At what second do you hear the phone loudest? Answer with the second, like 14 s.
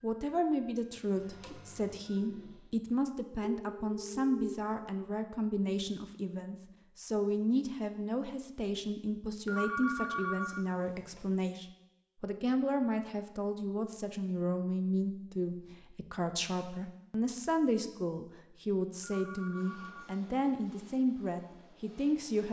10 s.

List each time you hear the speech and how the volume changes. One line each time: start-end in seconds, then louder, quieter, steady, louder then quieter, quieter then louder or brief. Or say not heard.
0.0-22.4 steady.